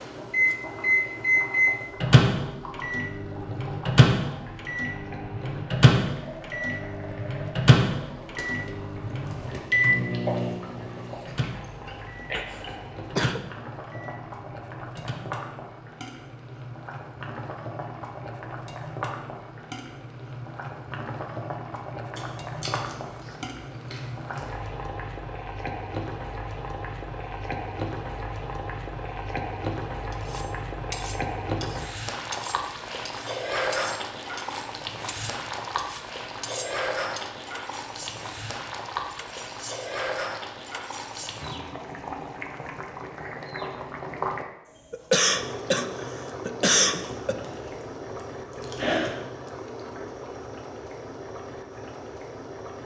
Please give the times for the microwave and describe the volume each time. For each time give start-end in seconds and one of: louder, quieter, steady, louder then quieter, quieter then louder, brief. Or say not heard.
0.0-15.2 quieter.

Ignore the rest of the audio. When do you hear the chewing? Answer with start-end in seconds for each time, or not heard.
10.2-12.8, 22.1-24.5, 47.0-49.1.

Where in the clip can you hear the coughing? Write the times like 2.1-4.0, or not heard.
12.3-13.4, 44.9-47.4.